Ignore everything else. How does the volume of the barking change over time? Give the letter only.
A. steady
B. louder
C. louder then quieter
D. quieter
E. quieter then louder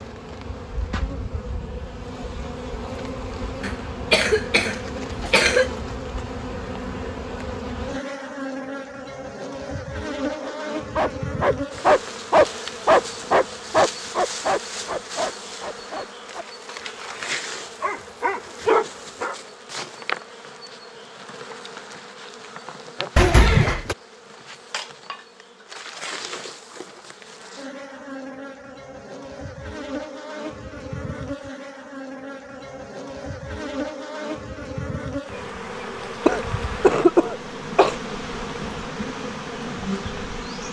E.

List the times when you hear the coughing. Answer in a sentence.
The coughing can be heard from 3.6 to 5.7 s, from 23.1 to 23.9 s and from 36.2 to 38.0 s.